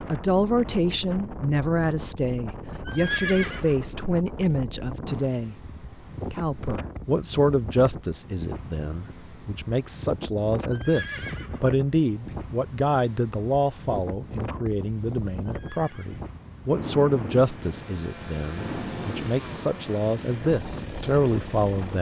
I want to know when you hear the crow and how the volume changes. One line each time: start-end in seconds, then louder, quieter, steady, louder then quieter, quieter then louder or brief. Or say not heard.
not heard.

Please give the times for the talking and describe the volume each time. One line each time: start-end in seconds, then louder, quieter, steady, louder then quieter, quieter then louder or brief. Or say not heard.
0.1-5.5 steady
6.3-21.9 steady.